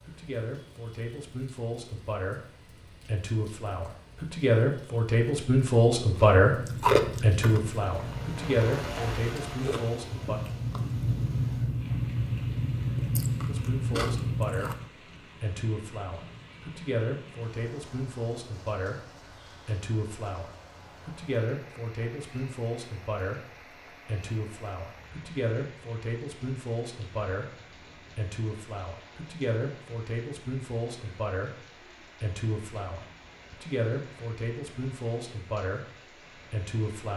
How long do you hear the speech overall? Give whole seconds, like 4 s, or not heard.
34 s.